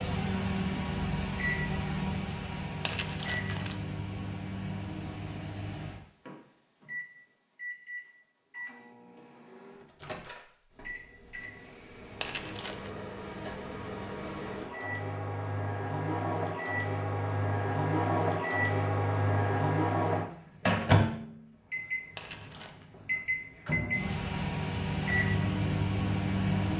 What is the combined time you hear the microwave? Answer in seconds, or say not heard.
27 s.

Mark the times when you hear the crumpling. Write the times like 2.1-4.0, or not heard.
2.9-3.9, 12.2-12.9, 22.1-22.9.